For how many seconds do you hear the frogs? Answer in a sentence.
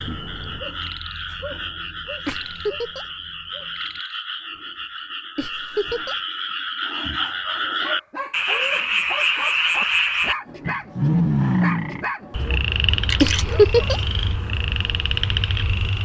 The frogs can be heard for 16 seconds in total.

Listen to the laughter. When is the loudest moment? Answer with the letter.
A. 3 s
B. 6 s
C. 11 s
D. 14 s
D.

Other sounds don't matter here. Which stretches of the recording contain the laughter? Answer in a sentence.
The laughter can be heard from 2.2 to 3.0 s, from 5.3 to 6.2 s and from 13.2 to 14.0 s.